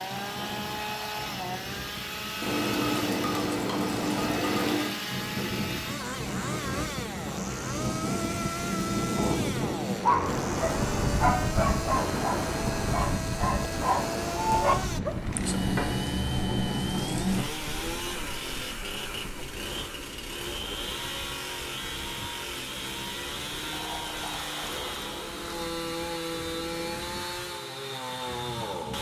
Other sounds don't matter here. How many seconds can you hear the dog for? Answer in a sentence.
You can hear the dog for 5 seconds altogether.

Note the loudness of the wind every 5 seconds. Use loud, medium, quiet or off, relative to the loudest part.
medium, loud, loud, medium, quiet, quiet.